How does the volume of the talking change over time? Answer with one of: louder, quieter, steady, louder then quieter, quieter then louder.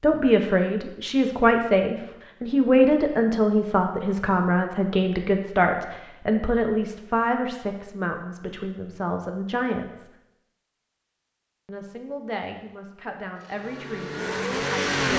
quieter.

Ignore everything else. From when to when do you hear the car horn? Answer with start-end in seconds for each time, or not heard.
not heard.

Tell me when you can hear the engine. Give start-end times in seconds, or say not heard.
13.4-15.1.